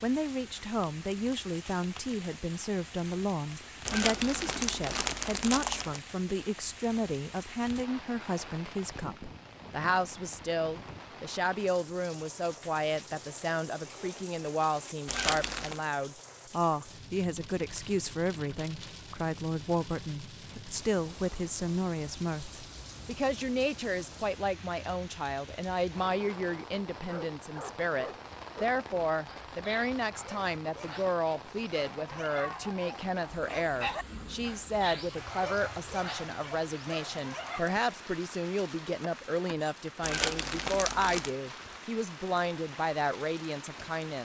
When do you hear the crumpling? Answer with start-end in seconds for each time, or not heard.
3.9-6.0, 15.1-15.8, 40.0-41.4.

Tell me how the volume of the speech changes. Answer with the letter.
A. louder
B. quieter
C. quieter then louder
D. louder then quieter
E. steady
E.